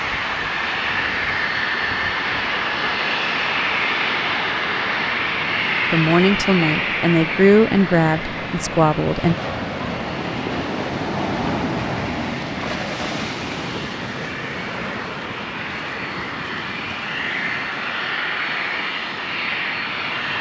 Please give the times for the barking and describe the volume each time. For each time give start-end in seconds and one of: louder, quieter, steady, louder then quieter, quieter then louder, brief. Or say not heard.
not heard.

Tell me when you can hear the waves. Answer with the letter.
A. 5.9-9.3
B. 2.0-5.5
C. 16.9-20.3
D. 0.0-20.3
D.